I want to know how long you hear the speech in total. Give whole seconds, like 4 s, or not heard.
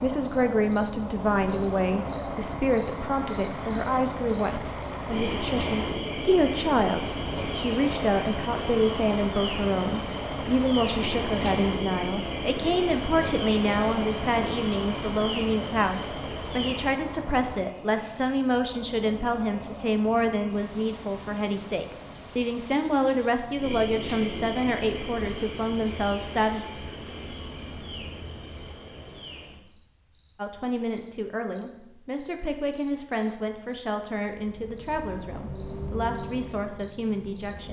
34 s.